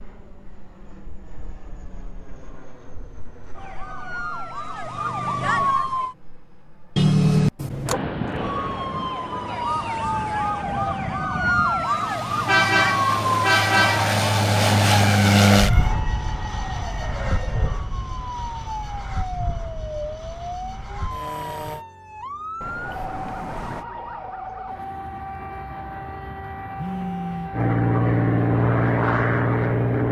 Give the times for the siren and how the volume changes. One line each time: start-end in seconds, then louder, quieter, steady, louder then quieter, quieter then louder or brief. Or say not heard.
3.5-6.2 brief
8.3-30.0 quieter.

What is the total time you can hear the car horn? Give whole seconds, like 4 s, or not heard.
4 s.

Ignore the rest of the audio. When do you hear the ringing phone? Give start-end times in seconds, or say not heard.
26.8-27.5.